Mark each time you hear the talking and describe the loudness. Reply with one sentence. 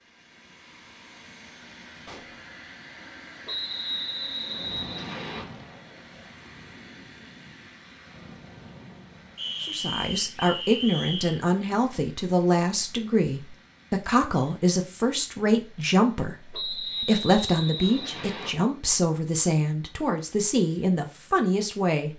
You can hear the talking from 9.6 to 22.1 s, at a steady volume.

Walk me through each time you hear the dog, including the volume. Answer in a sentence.
You can't hear the dog here.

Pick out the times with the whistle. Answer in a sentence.
The whistle can be heard from 3.5 to 5.5 s, from 9.3 to 11.4 s and from 16.5 to 18.5 s.